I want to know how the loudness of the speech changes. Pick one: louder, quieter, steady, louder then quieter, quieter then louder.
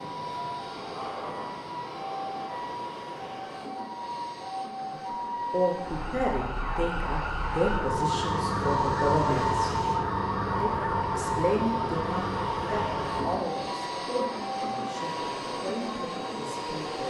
quieter.